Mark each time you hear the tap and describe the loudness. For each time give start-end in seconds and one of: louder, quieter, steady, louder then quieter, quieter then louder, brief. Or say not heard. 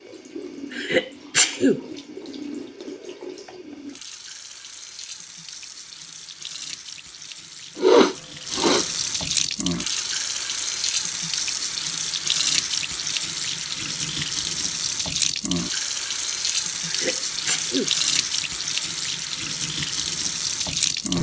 0.0-21.1 louder.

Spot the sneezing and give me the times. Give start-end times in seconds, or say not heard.
0.7-1.8, 7.8-8.8, 16.9-17.9.